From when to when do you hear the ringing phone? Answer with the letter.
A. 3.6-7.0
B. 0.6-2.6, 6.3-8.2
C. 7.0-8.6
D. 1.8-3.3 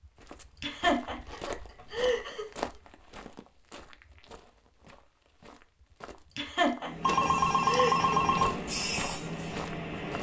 C.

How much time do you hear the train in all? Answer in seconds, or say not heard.
3 s.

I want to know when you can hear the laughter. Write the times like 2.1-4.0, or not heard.
0.6-2.6, 6.3-8.2.